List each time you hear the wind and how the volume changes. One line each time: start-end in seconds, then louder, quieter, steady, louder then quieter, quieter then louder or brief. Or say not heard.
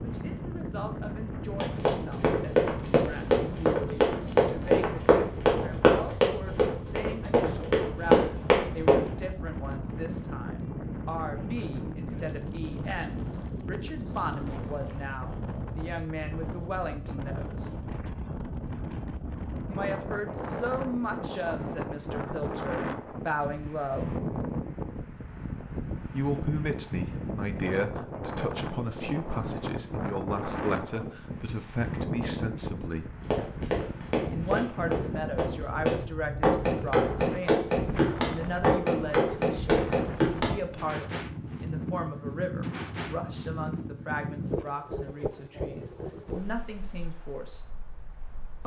0.0-48.6 steady.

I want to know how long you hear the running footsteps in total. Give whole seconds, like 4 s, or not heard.
15 s.